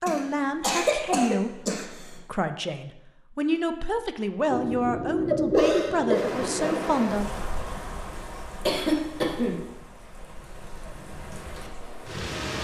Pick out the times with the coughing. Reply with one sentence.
The coughing can be heard from 0.1 to 2.1 s, from 4.5 to 6.7 s and from 8.7 to 9.6 s.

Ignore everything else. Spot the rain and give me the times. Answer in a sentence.
The rain can be heard from 6.2 to 12.6 s.